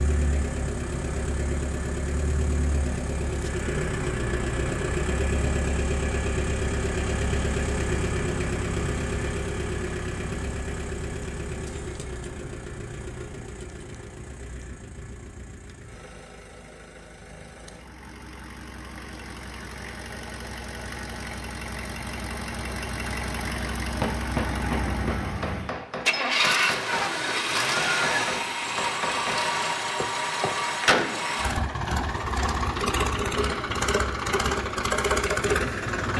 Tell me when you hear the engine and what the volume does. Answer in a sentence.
You can hear the engine from 0.0 to 36.1 s, getting quieter then louder.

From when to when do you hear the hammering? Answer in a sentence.
You can hear the hammering from 23.9 to 30.5 s.